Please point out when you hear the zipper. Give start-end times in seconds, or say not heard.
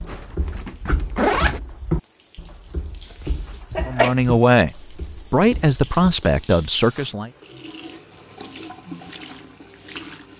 0.1-1.6.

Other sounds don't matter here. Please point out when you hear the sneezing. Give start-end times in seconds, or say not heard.
3.0-4.2.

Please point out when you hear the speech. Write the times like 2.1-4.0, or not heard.
3.9-7.3.